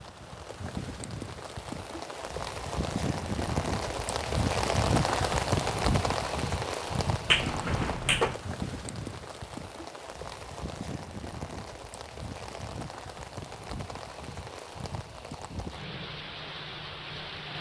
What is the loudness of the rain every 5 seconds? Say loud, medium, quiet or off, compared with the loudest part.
loud, loud, medium, medium.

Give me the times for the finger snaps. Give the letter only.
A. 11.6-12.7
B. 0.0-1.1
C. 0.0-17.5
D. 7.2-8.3
D.